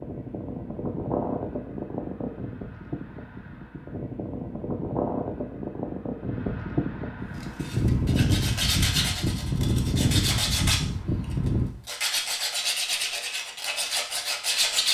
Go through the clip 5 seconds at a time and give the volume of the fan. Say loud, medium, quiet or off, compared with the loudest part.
medium, loud, loud.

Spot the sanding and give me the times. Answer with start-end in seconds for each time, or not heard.
7.4-14.8.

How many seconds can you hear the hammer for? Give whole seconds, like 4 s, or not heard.
not heard.